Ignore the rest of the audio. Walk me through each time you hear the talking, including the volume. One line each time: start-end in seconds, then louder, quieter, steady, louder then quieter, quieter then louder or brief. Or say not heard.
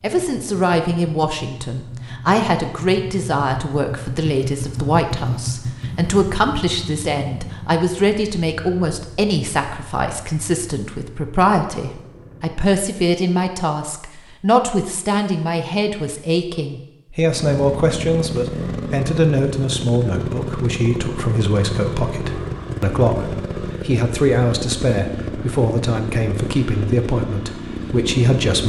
0.0-28.6 steady.